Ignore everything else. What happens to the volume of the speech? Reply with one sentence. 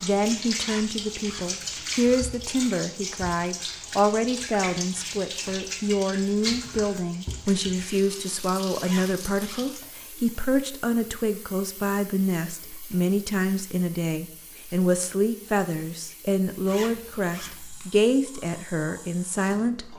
The loudness of the speech stays about the same.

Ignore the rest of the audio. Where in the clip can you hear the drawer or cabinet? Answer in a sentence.
You can't hear the drawer or cabinet here.